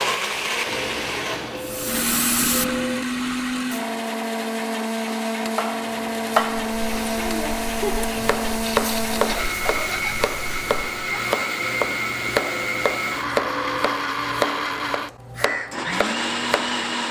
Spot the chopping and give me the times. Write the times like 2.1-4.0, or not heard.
5.5-16.9.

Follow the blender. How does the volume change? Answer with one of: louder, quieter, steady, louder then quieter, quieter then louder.
steady.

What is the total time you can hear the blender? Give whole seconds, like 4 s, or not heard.
17 s.